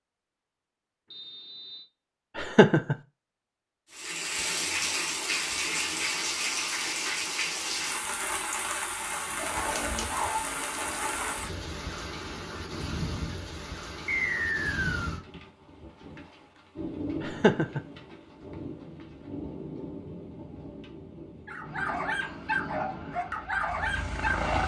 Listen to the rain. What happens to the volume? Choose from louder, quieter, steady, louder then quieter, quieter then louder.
quieter.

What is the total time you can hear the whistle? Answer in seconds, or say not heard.
2 s.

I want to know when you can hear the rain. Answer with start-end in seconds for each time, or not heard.
3.9-24.6.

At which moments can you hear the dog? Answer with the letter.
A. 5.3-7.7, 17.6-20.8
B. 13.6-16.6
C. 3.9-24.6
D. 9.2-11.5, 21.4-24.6
D.